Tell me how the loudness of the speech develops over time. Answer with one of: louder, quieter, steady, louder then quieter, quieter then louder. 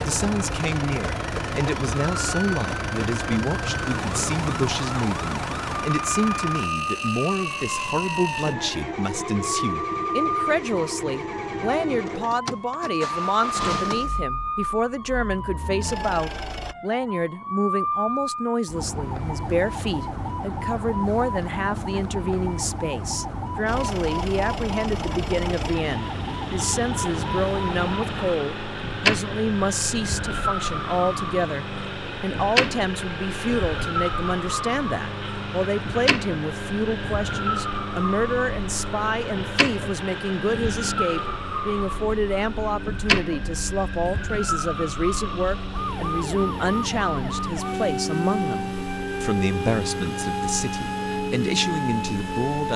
steady.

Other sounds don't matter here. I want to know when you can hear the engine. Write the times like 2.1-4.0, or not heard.
0.0-16.8, 23.6-52.7.